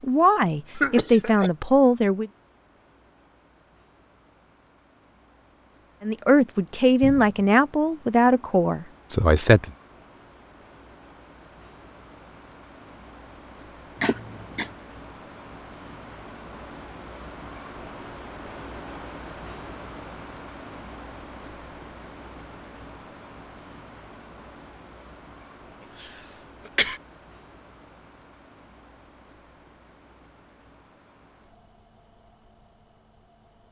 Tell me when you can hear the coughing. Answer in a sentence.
The coughing can be heard from 0.8 to 1.5 s, from 14.0 to 14.7 s and from 26.0 to 27.0 s.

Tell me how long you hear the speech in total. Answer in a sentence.
You can hear the speech for 6 seconds altogether.